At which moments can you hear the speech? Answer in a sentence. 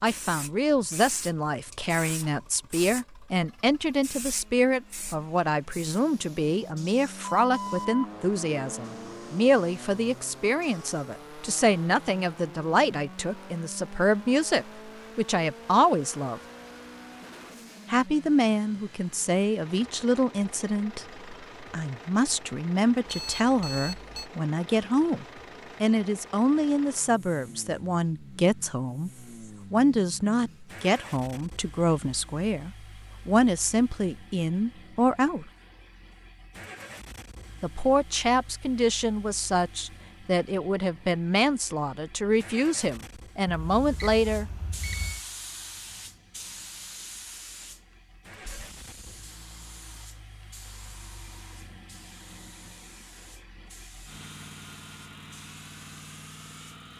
You can hear the speech from 0.0 to 16.4 s, from 17.9 to 29.1 s, from 29.7 to 35.5 s and from 37.6 to 44.5 s.